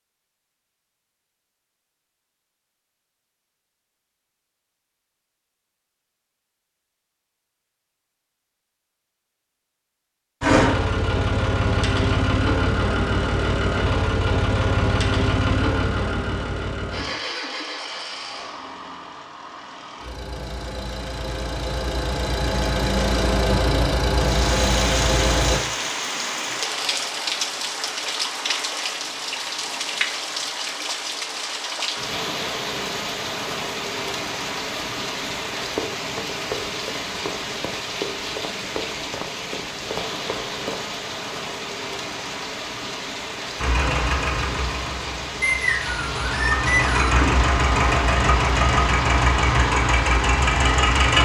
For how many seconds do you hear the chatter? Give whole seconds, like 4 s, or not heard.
not heard.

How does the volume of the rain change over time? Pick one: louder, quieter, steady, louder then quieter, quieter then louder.
quieter.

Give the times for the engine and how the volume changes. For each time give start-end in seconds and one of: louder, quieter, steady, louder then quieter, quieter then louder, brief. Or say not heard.
10.4-25.6 quieter then louder
43.5-51.2 louder.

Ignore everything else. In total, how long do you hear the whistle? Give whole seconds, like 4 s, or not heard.
2 s.